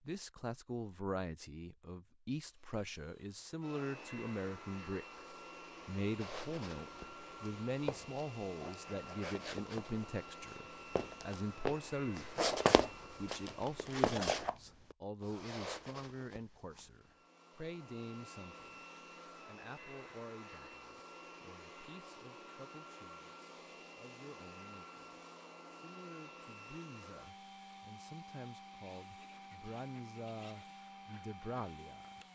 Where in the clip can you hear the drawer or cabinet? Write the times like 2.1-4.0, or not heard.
not heard.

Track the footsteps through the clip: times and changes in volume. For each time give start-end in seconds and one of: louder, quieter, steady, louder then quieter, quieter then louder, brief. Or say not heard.
6.2-16.9 louder then quieter.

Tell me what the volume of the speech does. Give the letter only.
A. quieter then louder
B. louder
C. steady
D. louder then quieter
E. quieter
A.